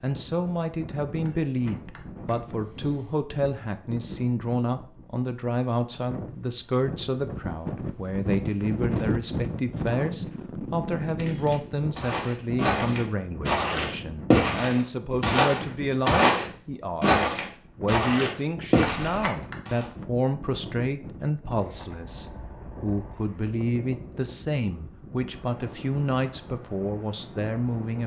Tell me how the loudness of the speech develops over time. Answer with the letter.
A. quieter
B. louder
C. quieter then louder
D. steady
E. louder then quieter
D.